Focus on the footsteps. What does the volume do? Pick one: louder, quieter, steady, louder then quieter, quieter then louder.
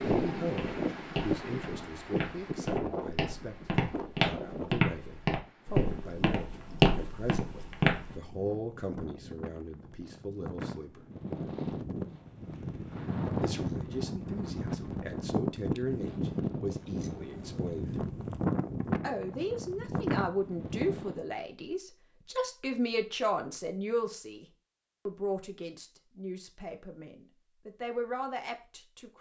louder.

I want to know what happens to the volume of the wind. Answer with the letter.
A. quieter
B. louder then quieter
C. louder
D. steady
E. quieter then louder
E.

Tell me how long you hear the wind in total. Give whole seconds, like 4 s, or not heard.
21 s.